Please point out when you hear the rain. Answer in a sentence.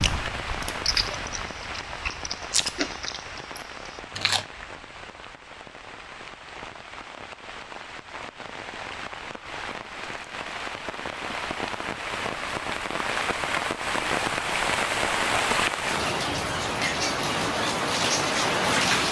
You can hear the rain from 0.0 to 19.0 s.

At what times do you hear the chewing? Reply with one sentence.
You can hear the chewing from 0.0 to 4.5 s.